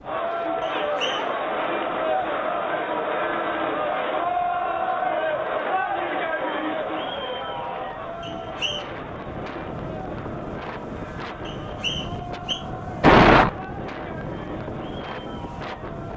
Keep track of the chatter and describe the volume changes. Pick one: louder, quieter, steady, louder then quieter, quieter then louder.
quieter.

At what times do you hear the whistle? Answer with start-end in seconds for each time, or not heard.
0.6-1.3, 8.2-8.8, 11.4-12.6.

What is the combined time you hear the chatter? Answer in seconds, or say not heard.
16 s.